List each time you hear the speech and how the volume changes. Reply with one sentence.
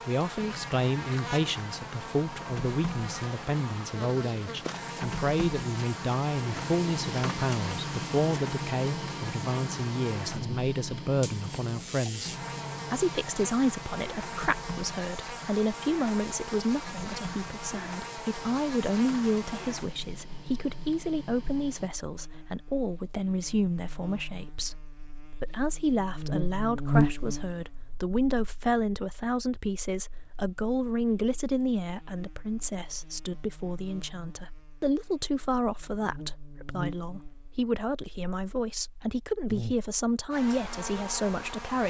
The speech can be heard from 0.1 to 12.3 s, at a steady volume; and from 12.9 to 41.8 s, at a steady volume.